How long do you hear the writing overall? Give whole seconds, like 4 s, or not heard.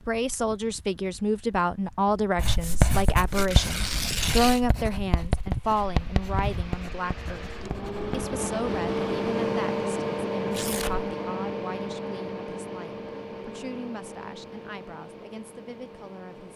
6 s.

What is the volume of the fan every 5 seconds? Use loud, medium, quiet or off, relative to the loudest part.
quiet, loud, loud, quiet.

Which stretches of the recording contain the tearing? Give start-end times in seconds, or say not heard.
3.3-4.6, 10.5-11.1.